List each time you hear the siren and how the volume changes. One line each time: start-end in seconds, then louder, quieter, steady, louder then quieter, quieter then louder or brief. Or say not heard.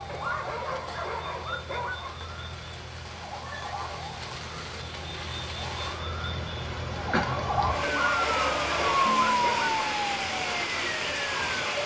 0.0-11.8 louder.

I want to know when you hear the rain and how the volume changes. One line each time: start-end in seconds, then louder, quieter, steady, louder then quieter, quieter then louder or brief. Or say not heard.
0.0-11.8 louder.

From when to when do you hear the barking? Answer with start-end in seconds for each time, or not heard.
0.1-2.1, 7.8-9.8.